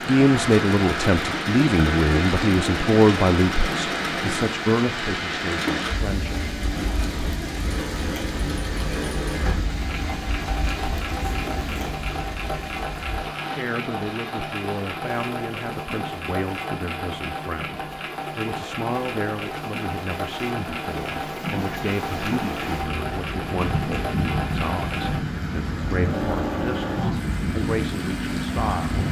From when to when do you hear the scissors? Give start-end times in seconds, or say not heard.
11.1-11.9.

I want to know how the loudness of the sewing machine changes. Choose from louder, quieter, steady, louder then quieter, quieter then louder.
steady.